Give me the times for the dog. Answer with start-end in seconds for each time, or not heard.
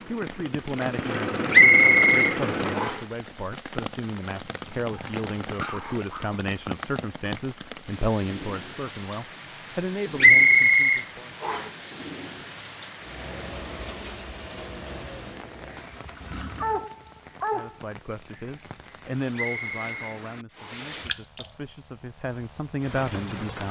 4.6-6.4, 16.6-17.8.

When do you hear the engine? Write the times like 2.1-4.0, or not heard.
0.0-3.0, 12.9-16.9.